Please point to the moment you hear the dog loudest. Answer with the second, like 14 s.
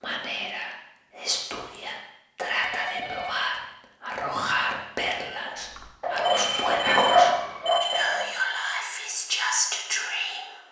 7 s.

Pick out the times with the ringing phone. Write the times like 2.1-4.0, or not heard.
2.6-3.4, 6.2-8.1.